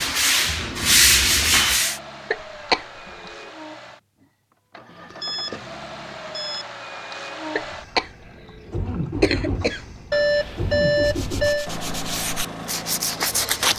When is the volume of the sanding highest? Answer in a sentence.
The loudest moment of the sanding is at 1 second.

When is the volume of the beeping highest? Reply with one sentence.
The loudest moment of the beeping is at 11 seconds.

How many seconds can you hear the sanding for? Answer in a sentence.
You can hear the sanding for 5 seconds altogether.